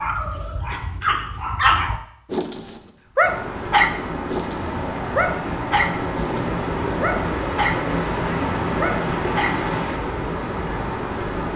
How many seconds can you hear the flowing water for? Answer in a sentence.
You can hear the flowing water for 8 seconds altogether.